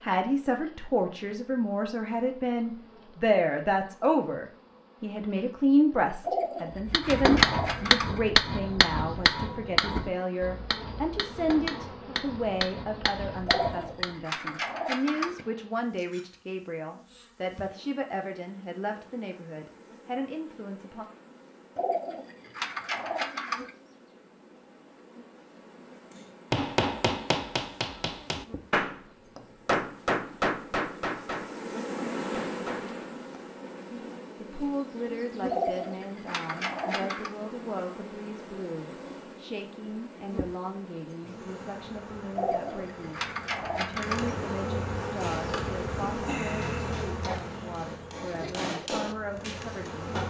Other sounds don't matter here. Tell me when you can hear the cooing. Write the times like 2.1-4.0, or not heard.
6.2-8.2, 13.4-15.4, 21.8-23.7, 35.5-37.3, 42.4-44.3.